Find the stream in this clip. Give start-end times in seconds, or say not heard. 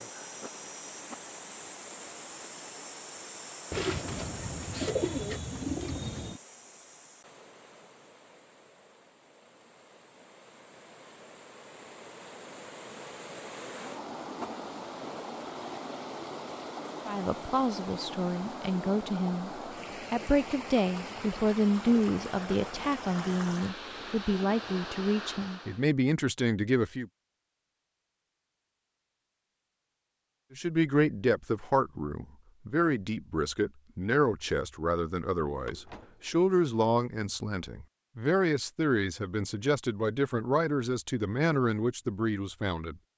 0.0-25.9.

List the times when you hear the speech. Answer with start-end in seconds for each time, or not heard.
17.1-19.5, 20.1-27.1, 30.5-43.0.